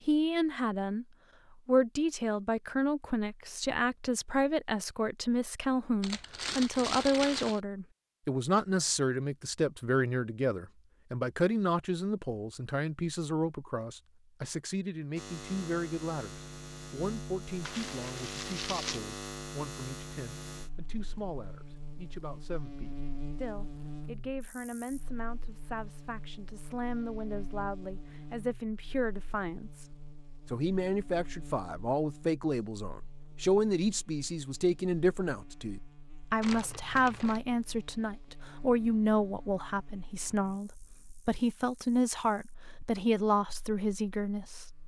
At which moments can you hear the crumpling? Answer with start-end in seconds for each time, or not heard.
6.0-7.6, 17.6-19.0, 36.4-37.4.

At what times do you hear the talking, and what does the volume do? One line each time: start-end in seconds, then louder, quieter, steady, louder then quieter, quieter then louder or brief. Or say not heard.
0.1-1.1 brief
1.6-44.6 quieter then louder.